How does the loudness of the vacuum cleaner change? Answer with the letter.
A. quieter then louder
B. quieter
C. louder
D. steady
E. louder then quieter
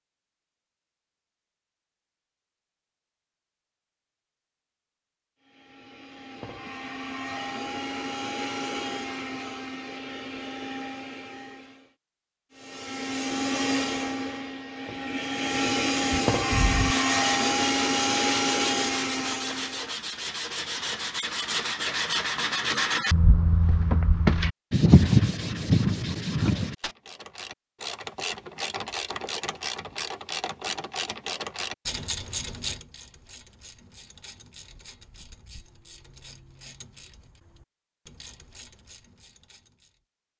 C.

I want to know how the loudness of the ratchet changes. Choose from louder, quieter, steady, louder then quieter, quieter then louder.
quieter.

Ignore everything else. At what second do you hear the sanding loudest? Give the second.
25 s.